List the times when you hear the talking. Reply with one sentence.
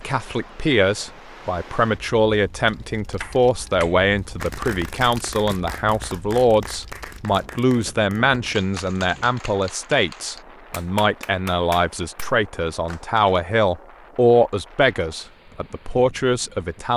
The talking can be heard from 0.0 to 16.9 s.